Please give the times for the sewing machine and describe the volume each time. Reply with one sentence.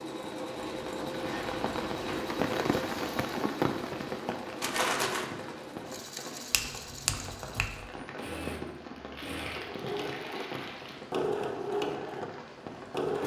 You can hear the sewing machine from 0.0 to 13.2 s, getting quieter then louder.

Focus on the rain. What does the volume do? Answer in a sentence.
The loudness of the rain goes down.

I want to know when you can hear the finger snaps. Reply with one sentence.
You can hear the finger snaps from 6.5 to 7.8 s.